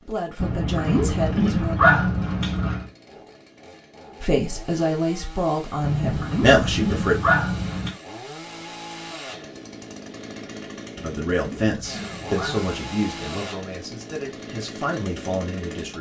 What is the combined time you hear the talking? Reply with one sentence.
You can hear the talking for 10 seconds altogether.